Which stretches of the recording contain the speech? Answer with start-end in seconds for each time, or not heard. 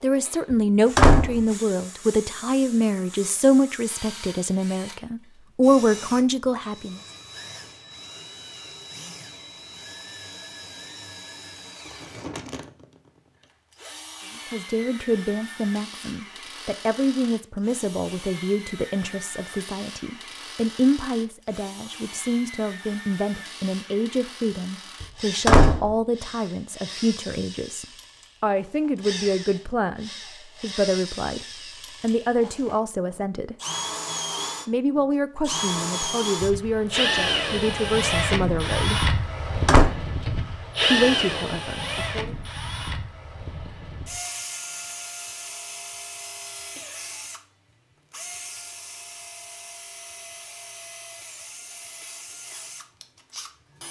0.0-7.0, 14.5-33.5, 34.6-39.1, 40.9-42.4.